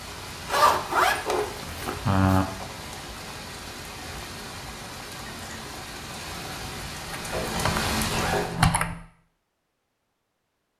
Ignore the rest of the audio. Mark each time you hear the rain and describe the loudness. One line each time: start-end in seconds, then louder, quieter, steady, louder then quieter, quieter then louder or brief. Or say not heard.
0.0-8.6 louder.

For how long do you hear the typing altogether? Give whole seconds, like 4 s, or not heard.
2 s.